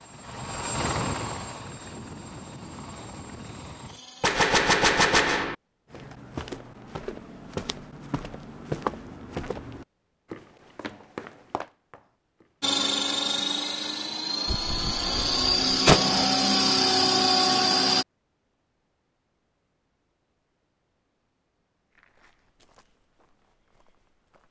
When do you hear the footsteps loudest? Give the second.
9 s.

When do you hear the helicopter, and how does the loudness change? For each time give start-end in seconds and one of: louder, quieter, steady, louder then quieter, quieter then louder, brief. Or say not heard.
0.0-4.4 quieter
12.6-18.1 louder.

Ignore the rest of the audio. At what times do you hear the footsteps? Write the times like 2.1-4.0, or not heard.
5.9-12.7, 21.9-24.4.